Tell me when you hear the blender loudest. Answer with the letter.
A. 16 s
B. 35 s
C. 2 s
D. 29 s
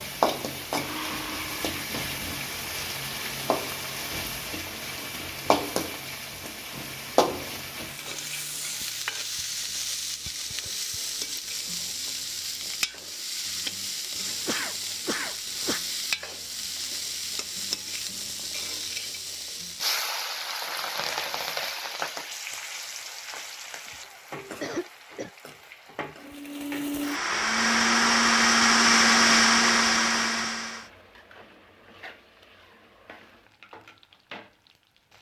D.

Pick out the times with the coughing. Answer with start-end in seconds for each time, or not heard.
14.4-15.8, 24.1-25.3.